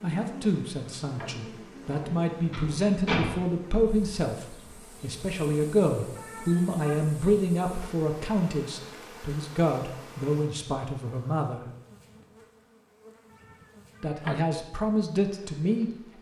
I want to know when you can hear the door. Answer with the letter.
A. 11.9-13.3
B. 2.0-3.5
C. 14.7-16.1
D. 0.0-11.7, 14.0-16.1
B.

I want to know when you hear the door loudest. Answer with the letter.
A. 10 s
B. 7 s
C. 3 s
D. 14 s
C.